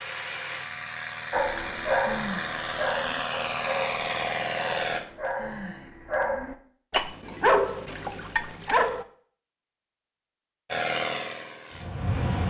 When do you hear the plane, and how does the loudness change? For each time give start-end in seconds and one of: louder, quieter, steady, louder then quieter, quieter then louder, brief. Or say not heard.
0.0-5.0 louder
10.7-12.4 brief.